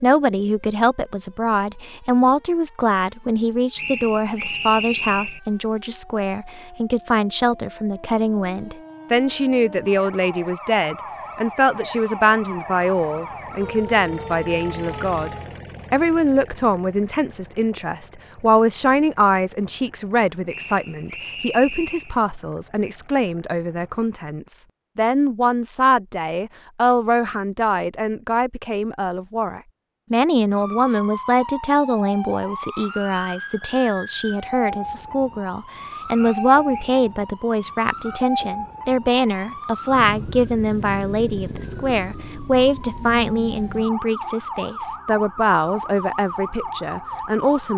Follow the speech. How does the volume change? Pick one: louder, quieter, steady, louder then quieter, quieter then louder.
steady.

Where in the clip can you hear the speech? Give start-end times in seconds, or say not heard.
0.0-47.7.